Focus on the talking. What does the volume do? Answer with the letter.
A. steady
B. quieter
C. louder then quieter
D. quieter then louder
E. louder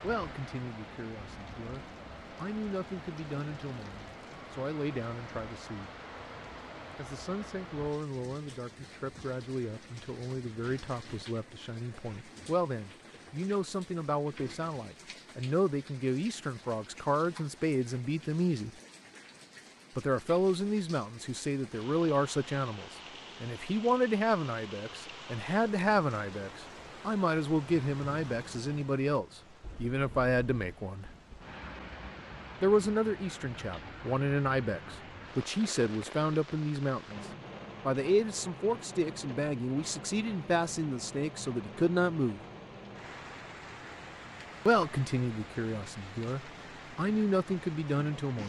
E.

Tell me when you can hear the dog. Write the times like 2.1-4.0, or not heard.
not heard.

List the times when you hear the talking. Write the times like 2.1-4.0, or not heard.
0.0-5.9, 7.0-18.7, 19.9-31.1, 32.6-42.4, 44.6-48.4.